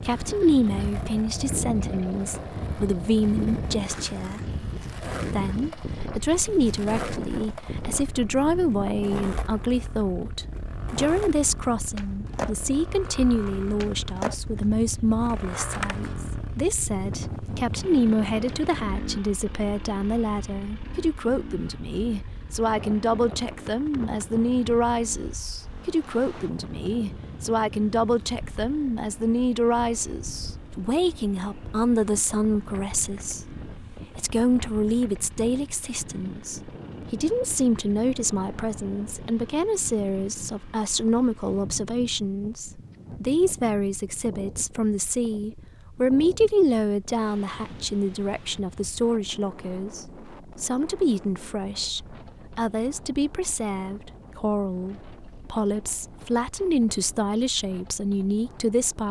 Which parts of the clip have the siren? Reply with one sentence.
The siren can't be heard in this clip.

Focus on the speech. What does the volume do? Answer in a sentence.
The loudness of the speech stays about the same.